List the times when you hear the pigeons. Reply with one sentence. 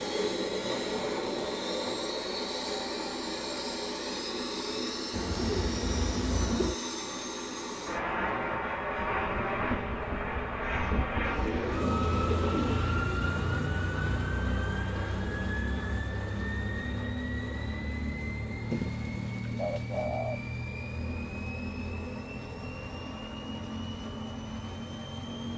You can hear the pigeons from 5.1 to 6.8 s, from 11.2 to 12.9 s and from 18.7 to 20.4 s.